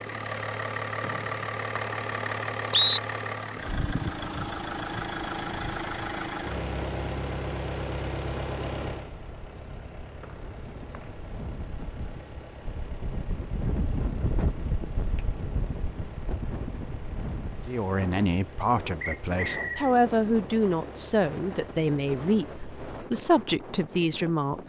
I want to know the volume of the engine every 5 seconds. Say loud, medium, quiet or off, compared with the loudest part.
loud, loud, quiet, quiet, quiet.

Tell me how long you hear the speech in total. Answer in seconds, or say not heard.
7 s.